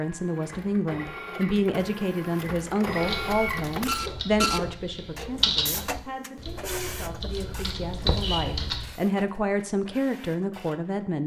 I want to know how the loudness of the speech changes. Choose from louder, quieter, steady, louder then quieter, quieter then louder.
quieter then louder.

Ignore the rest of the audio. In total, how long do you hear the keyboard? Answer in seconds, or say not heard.
6 s.